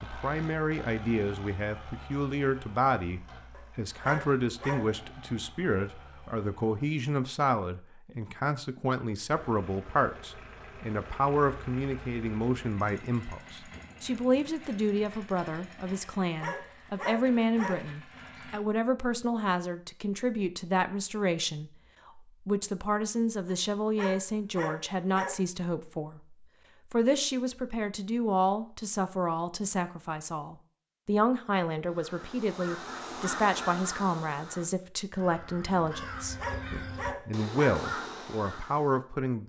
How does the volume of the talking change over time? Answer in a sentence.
The loudness of the talking stays about the same.